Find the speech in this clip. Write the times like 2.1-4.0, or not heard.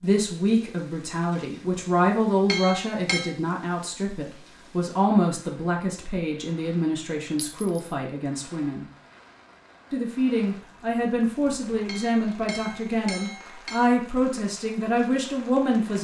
0.0-8.8, 9.9-15.9.